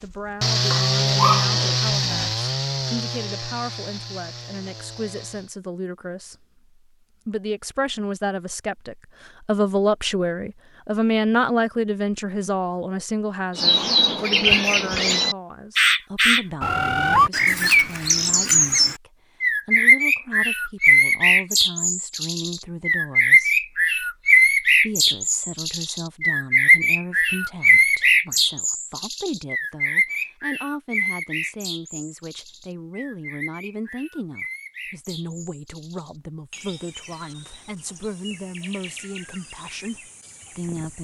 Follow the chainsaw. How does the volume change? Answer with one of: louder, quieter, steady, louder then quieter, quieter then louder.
quieter.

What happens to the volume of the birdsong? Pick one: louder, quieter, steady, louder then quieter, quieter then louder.
quieter.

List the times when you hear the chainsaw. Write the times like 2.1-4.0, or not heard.
0.0-5.5.